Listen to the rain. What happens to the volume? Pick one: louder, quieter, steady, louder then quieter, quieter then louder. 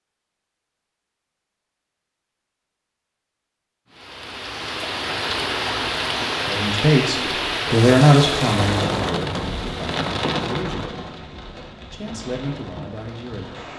quieter.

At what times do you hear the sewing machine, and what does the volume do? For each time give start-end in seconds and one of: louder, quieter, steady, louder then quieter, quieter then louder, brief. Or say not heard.
not heard.